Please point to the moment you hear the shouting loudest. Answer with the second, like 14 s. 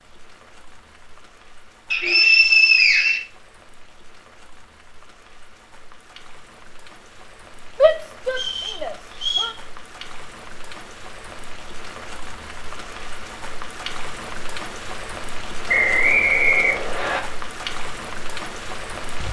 8 s.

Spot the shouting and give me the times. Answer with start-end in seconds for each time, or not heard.
7.8-9.6.